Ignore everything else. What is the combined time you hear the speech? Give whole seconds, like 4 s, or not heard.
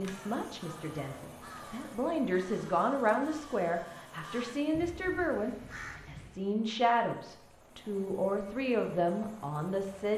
10 s.